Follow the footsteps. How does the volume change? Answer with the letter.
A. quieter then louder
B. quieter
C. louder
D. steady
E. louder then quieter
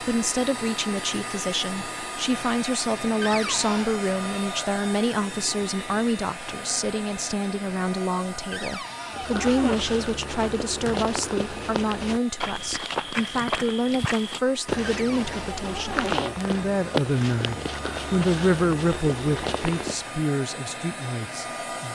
D.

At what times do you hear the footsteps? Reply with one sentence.
You can hear the footsteps from 9.2 to 20.1 s.